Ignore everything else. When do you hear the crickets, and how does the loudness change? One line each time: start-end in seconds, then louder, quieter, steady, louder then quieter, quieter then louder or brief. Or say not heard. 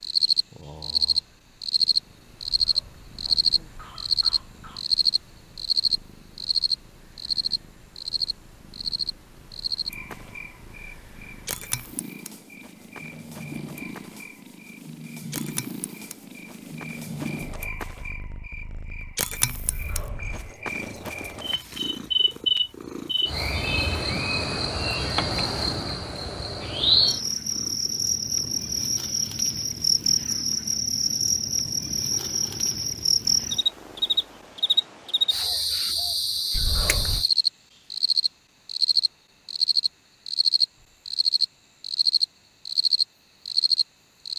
0.0-44.3 quieter then louder.